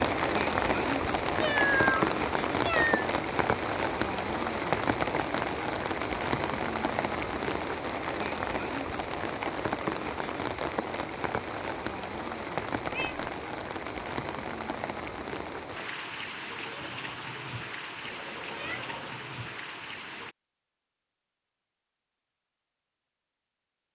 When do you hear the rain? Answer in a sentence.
You can hear the rain from 0.0 to 20.4 s.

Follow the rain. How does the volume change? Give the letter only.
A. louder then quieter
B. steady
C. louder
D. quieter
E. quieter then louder
D.